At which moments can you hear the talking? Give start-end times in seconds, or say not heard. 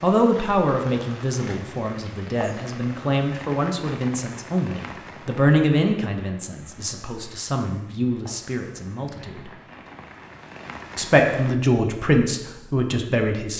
0.0-9.5, 10.9-13.5.